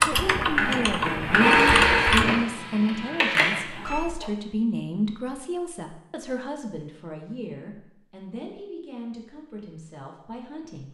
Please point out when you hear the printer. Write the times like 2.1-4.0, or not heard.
0.0-4.3.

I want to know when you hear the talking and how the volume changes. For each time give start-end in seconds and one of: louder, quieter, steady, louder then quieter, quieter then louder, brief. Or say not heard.
0.0-10.8 quieter.